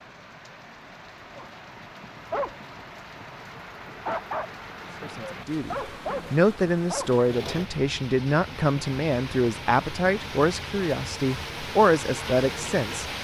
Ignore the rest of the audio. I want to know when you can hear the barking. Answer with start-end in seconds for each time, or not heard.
1.4-7.2.